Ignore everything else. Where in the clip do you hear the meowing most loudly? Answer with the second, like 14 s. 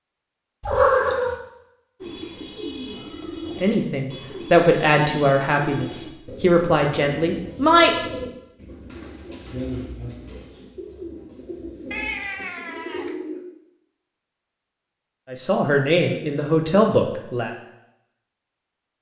1 s.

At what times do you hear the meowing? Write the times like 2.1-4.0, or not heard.
0.6-1.4, 11.9-13.2.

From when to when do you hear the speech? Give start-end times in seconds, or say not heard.
3.5-8.0, 15.3-17.5.